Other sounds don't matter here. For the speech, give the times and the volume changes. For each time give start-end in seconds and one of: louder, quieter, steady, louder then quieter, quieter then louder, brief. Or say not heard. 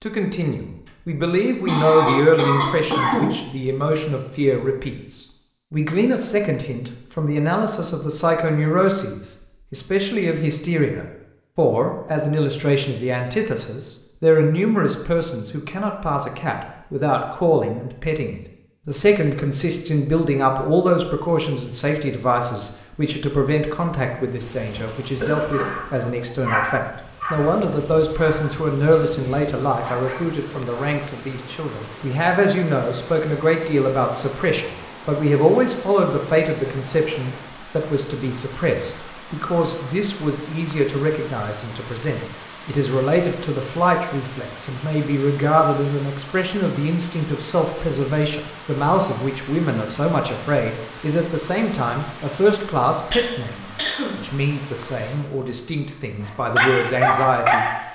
0.0-57.7 steady.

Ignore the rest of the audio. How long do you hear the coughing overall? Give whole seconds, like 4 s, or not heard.
3 s.